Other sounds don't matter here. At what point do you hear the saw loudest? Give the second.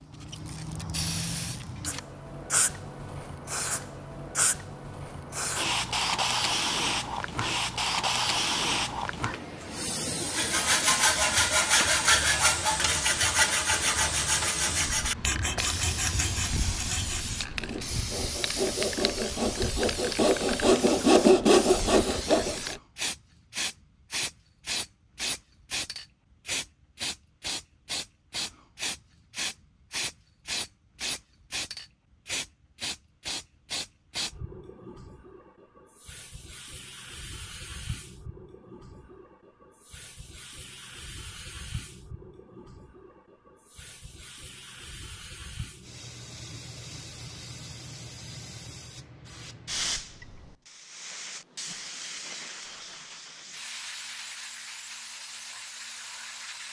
21 s.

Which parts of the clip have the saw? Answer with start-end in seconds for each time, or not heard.
10.2-22.8.